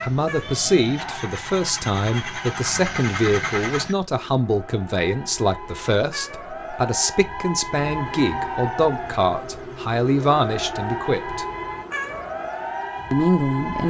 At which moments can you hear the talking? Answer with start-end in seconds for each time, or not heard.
0.0-11.4, 13.1-13.8.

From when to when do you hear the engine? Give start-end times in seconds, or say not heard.
0.0-4.0.